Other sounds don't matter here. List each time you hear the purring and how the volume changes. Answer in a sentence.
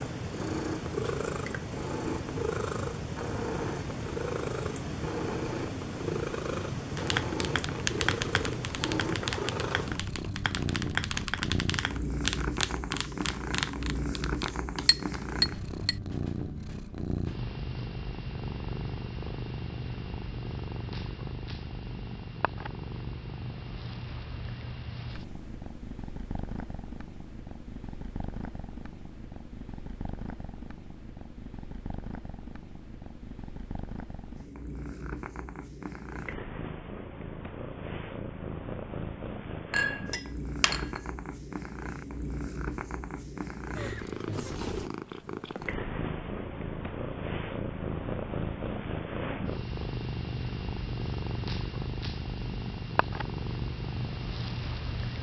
You can hear the purring from 0.0 to 55.1 s, getting quieter then louder.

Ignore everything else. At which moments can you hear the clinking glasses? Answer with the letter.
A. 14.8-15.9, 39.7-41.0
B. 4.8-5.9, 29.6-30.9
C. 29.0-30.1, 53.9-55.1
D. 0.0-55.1
A.